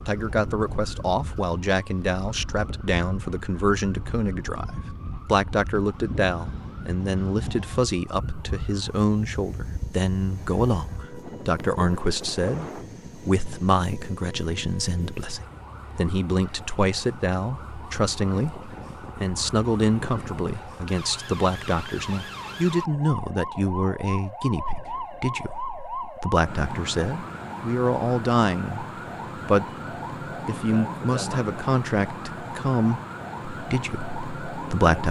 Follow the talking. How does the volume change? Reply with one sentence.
The volume of the talking stays about the same.